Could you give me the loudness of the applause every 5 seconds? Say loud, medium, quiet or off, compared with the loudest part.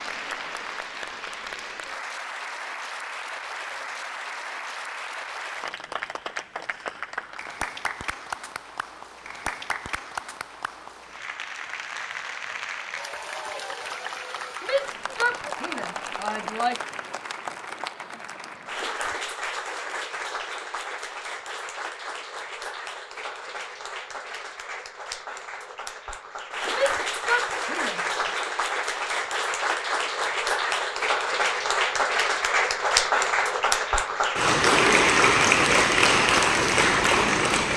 quiet, quiet, quiet, quiet, quiet, medium, loud, loud.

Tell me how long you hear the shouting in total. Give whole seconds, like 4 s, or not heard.
4 s.